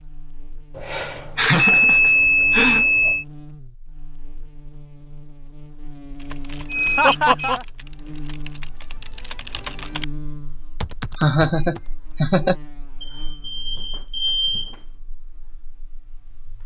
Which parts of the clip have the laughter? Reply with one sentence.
You can hear the laughter from 0.9 to 2.9 s, from 7.0 to 7.7 s and from 11.2 to 12.6 s.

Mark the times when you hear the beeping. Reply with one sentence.
You can hear the beeping from 0.8 to 3.2 s, from 6.7 to 7.5 s and from 13.0 to 14.8 s.